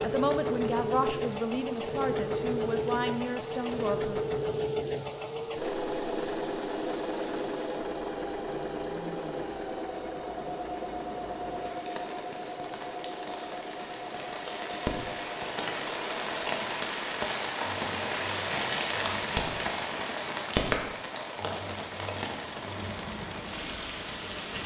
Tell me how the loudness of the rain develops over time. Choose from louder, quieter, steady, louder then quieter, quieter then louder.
louder.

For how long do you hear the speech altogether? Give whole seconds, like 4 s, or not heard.
4 s.